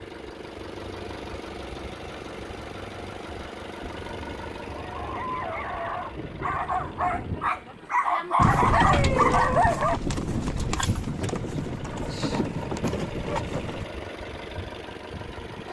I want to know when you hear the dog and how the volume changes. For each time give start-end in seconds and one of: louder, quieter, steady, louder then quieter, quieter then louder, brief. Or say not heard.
4.7-10.0 louder.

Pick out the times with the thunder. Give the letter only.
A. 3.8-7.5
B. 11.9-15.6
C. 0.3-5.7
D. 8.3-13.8
A.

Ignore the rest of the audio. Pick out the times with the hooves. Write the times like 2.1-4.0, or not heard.
8.3-13.8.